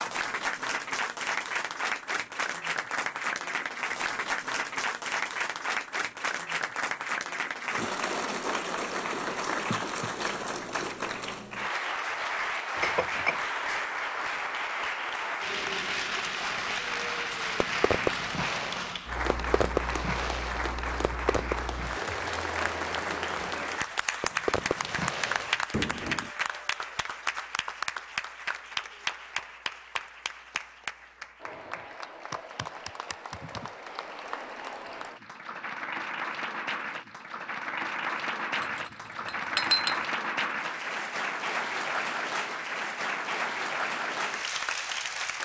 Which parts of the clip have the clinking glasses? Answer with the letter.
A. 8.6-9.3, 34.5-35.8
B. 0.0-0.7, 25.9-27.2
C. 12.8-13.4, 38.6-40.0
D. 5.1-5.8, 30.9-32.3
C.